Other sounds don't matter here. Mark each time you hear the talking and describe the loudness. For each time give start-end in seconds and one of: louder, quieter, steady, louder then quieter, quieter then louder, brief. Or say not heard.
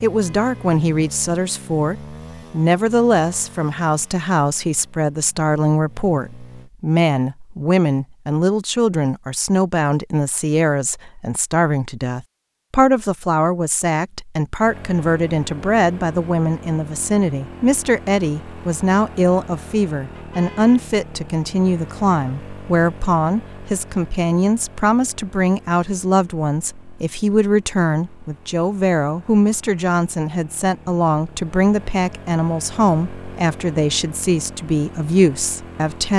0.0-36.1 steady.